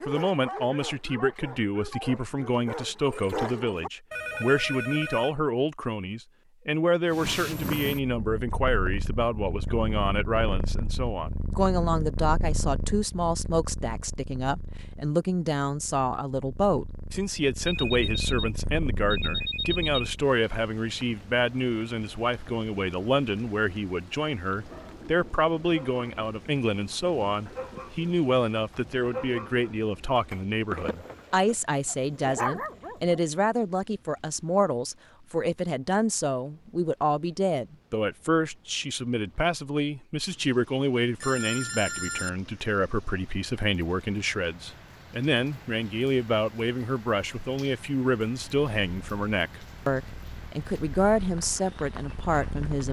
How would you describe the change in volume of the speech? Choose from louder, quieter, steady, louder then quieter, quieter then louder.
steady.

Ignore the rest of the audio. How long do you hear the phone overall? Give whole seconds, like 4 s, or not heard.
5 s.